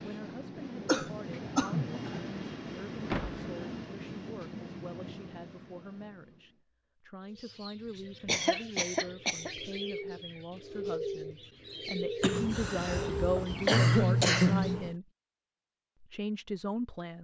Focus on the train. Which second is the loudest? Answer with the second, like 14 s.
2 s.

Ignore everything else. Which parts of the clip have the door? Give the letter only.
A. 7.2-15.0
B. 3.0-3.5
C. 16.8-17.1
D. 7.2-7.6
B.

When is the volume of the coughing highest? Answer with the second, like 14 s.
14 s.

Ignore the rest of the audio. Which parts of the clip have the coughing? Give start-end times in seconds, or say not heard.
0.8-1.9, 8.2-9.6, 12.2-14.9.